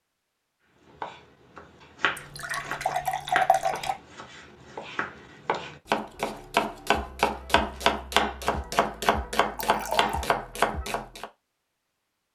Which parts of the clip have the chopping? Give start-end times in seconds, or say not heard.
0.8-11.2.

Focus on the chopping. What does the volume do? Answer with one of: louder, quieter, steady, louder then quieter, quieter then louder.
louder.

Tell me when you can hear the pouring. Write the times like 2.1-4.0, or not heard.
2.1-4.0, 9.6-10.2.